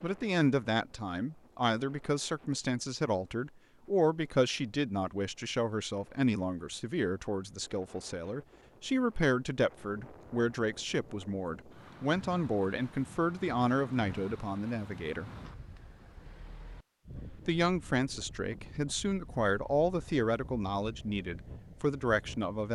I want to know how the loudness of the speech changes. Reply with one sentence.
The loudness of the speech stays about the same.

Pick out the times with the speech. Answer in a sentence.
The speech can be heard from 0.0 to 15.3 s and from 17.4 to 22.6 s.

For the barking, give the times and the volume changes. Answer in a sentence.
The barking can't be heard in this clip.